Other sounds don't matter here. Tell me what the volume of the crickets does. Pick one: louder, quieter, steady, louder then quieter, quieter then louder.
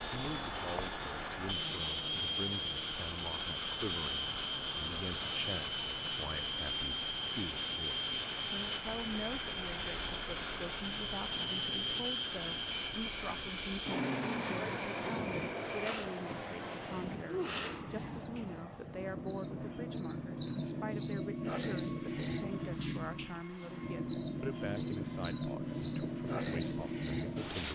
louder.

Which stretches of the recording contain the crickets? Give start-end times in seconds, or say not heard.
12.7-27.7.